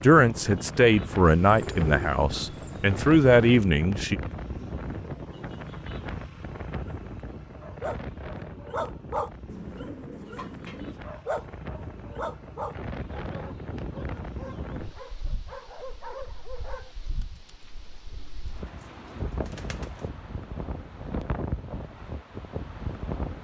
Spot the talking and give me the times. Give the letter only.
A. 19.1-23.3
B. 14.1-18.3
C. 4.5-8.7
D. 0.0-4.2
D.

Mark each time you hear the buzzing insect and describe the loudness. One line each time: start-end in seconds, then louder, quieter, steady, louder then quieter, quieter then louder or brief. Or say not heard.
not heard.